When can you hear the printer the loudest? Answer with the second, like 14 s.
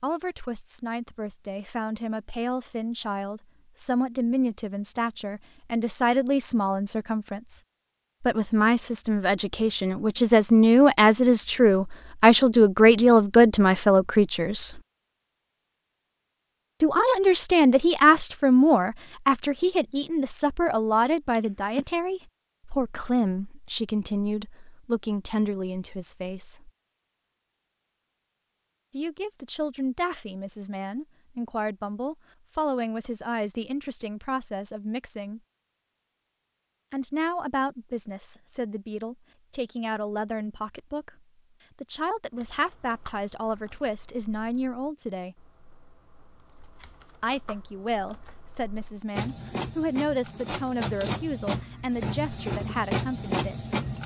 53 s.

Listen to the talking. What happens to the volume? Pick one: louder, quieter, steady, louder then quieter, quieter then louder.
louder then quieter.